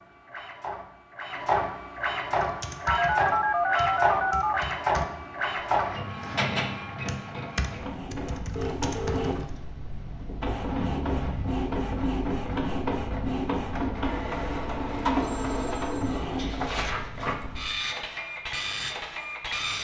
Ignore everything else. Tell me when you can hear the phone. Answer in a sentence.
The phone can be heard from 2.9 to 4.6 s, from 8.6 to 9.3 s and from 15.2 to 16.2 s.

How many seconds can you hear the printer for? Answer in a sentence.
You can hear the printer for 20 seconds altogether.